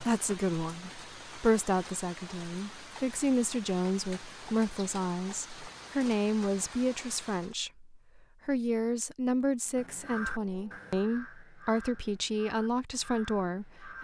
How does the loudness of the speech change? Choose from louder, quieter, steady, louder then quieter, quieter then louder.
steady.